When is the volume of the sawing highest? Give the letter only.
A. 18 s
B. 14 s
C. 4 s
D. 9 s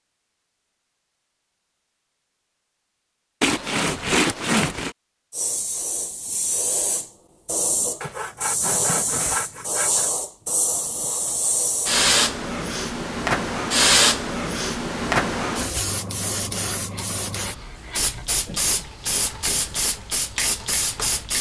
C.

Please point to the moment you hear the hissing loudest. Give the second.
14 s.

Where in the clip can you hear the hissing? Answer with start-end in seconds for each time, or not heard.
5.3-21.3.